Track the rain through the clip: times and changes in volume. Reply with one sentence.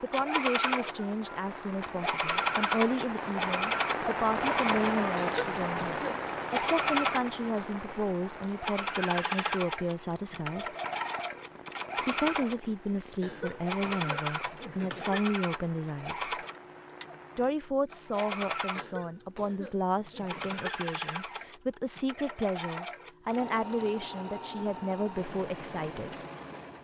You can hear the rain from 0.0 to 17.6 s, getting louder then quieter.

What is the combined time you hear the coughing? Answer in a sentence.
You can hear the coughing for 5 seconds altogether.